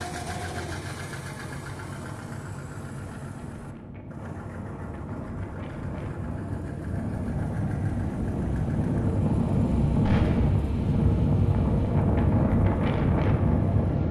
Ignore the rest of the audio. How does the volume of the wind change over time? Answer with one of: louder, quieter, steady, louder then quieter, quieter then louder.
louder.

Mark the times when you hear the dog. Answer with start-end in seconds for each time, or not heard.
not heard.